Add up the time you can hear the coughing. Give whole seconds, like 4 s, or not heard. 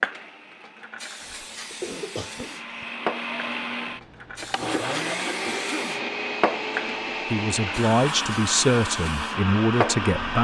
2 s.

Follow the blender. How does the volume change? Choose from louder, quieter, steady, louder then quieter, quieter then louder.
louder.